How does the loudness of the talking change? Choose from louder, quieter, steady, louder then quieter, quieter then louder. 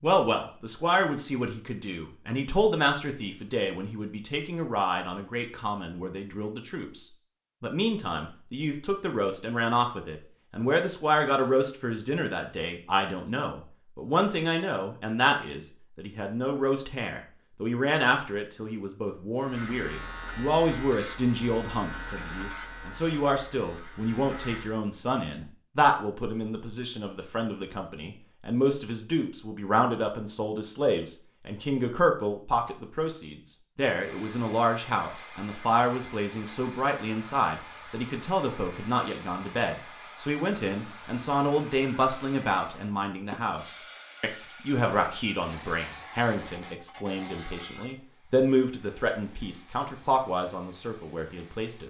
steady.